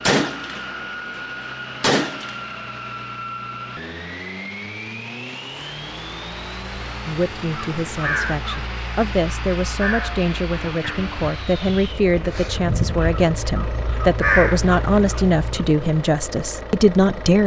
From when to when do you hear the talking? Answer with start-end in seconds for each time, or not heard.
7.0-17.4.